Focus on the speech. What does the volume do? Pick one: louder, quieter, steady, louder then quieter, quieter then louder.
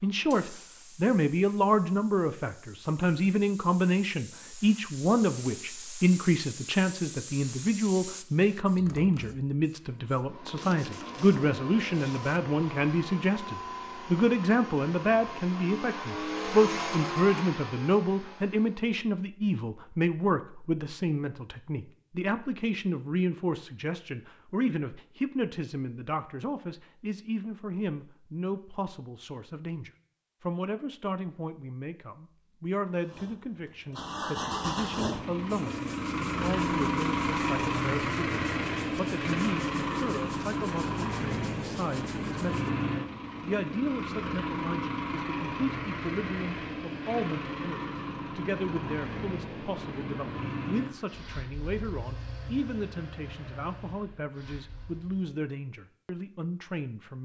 quieter.